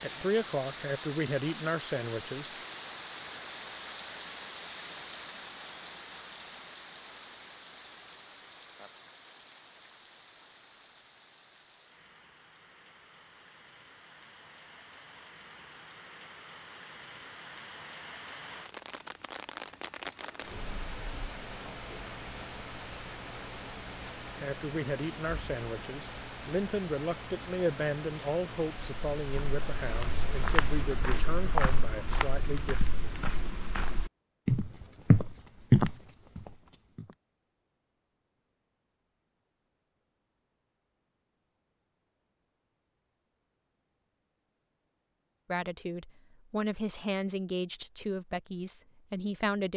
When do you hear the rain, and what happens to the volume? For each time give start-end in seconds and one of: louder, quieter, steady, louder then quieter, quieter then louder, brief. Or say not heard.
0.0-30.9 quieter then louder.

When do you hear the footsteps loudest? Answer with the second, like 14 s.
36 s.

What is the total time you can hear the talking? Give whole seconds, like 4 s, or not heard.
15 s.